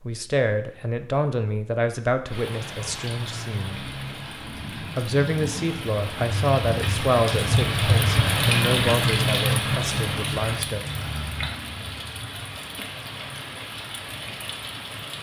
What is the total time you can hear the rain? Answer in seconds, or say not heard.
13 s.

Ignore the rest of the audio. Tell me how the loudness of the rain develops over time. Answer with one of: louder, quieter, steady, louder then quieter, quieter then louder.
louder then quieter.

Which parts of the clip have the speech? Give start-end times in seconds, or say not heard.
0.0-3.8, 4.8-10.8.